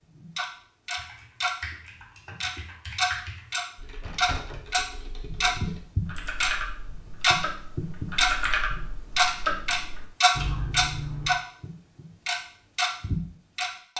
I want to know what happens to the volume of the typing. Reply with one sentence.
The volume of the typing goes down, then up.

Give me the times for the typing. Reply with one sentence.
The typing can be heard from 0.9 to 11.3 s.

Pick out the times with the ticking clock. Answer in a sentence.
The ticking clock can be heard from 0.1 to 1.6 s and from 2.4 to 13.9 s.